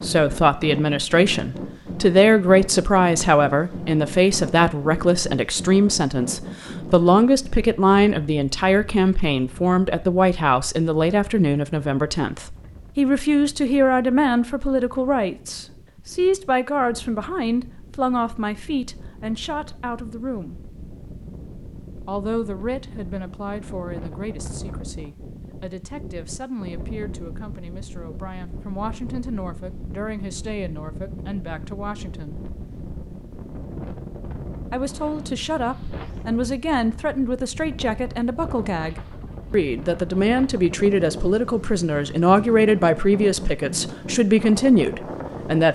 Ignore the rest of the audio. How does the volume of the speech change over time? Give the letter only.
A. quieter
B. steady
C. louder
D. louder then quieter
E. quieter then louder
E.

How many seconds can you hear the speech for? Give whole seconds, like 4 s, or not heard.
42 s.